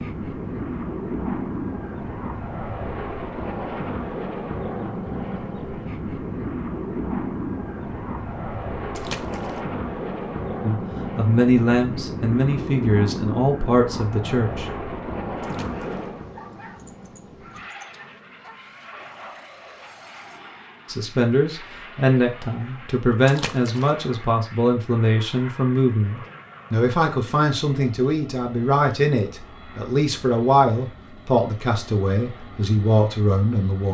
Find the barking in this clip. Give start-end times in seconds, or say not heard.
15.7-20.6.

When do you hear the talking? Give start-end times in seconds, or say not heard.
10.6-14.7, 20.9-33.8.